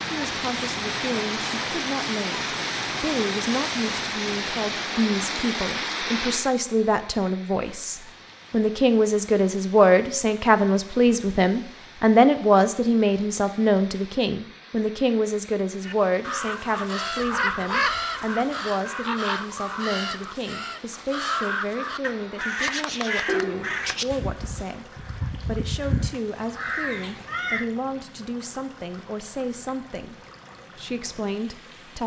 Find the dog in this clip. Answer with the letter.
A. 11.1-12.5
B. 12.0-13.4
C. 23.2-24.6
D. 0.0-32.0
C.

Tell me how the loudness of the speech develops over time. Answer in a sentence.
The loudness of the speech goes up, then down.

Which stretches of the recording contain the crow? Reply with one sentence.
The crow can be heard from 15.8 to 27.6 s.